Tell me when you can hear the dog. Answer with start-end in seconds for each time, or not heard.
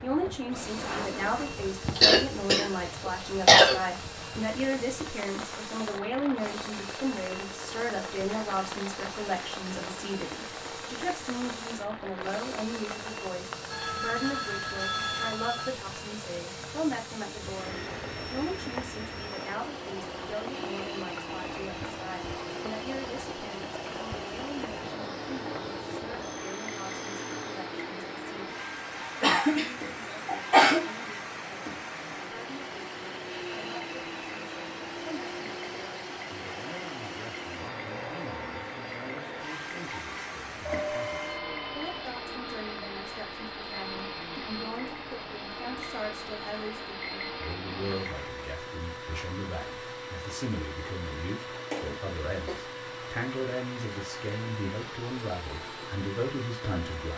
not heard.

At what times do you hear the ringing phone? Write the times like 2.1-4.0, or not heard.
13.7-15.7, 26.2-27.3, 40.6-42.1.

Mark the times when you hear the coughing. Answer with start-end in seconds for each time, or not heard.
1.9-3.8, 29.2-30.9, 51.7-52.6.